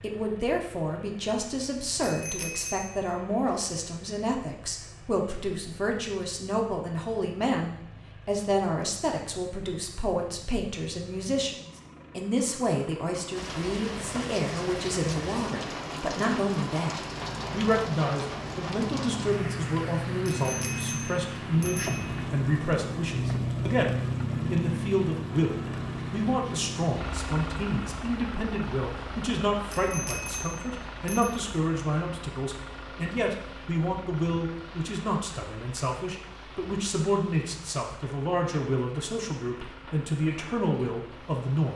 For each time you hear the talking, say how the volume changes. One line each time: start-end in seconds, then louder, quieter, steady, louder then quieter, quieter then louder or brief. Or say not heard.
0.0-41.7 steady.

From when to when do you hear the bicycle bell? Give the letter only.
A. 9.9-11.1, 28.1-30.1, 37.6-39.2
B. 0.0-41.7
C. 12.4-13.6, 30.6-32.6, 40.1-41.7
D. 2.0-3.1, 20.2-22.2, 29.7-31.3
D.